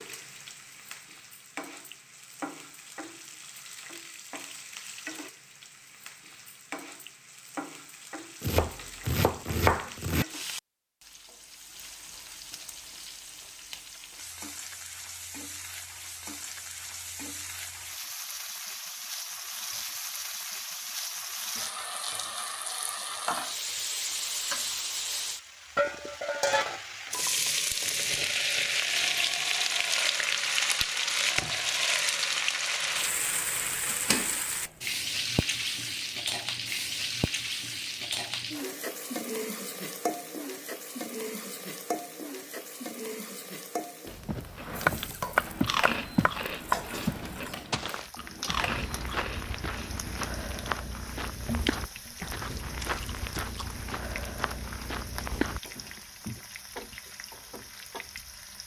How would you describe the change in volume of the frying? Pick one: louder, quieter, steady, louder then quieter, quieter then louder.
louder then quieter.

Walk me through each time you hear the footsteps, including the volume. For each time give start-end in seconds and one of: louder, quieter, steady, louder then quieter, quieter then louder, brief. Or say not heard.
44.2-46.4 brief
47.0-56.4 steady.